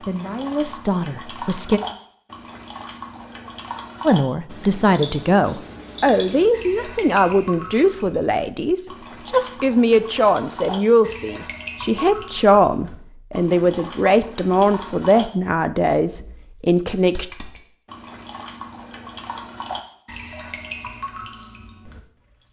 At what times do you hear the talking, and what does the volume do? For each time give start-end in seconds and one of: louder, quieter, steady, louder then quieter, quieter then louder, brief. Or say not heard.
0.0-1.8 brief
4.0-17.2 steady.